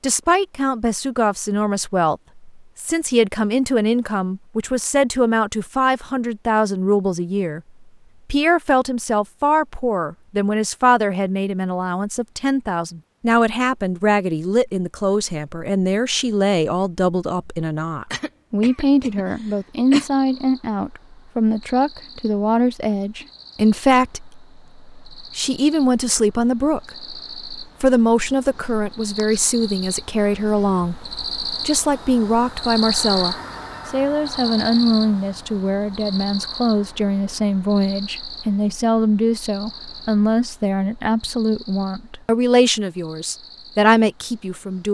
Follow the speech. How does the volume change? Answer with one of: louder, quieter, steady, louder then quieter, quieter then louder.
steady.